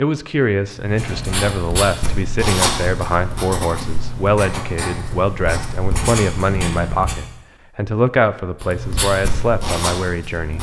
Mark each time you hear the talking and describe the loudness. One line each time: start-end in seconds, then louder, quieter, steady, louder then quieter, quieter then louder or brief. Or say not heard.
0.0-10.5 steady.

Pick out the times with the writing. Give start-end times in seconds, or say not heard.
0.7-7.2, 8.6-10.5.